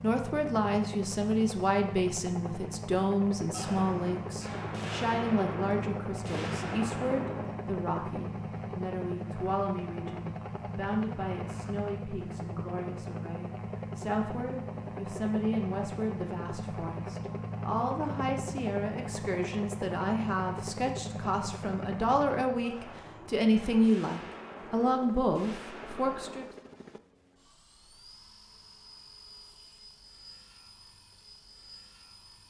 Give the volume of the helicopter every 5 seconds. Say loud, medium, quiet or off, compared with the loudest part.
loud, loud, loud, loud, loud, quiet, quiet.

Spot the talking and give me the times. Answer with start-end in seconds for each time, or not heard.
0.0-26.4.